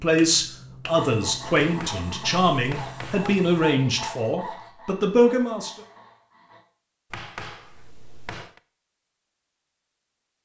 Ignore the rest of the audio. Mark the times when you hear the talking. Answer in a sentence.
The talking can be heard from 0.0 to 5.8 s.